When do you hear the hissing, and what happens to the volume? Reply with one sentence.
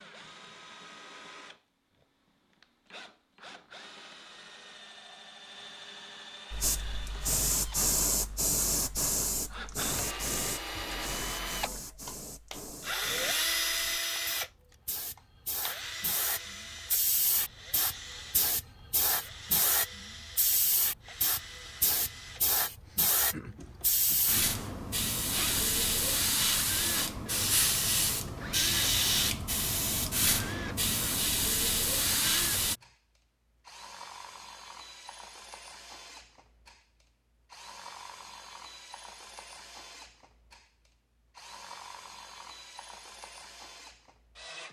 The hissing can be heard from 6.5 to 32.8 s, getting quieter then louder.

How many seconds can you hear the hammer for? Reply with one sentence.
You can't hear the hammer here.